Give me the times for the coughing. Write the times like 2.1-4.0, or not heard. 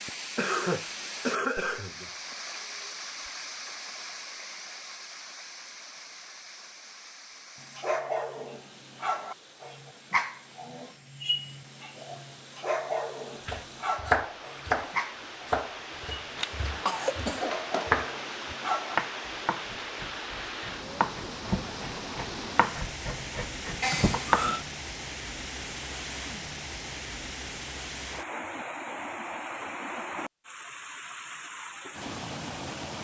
0.3-2.4, 16.4-17.9, 23.8-24.6.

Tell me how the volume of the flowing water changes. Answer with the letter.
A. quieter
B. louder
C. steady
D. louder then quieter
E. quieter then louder
E.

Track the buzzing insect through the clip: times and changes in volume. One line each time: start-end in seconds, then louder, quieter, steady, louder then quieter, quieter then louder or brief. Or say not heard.
not heard.